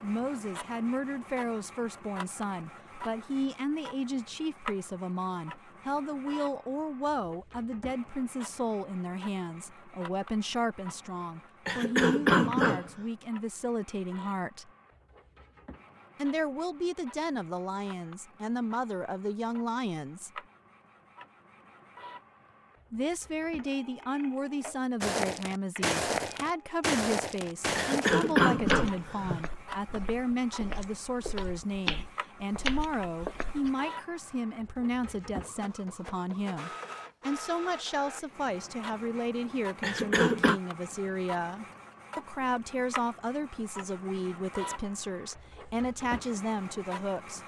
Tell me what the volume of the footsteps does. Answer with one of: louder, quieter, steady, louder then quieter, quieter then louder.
quieter then louder.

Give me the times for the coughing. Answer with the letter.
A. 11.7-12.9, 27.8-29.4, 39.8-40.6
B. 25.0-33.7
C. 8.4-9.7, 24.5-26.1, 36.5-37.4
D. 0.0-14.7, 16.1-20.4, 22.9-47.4
A.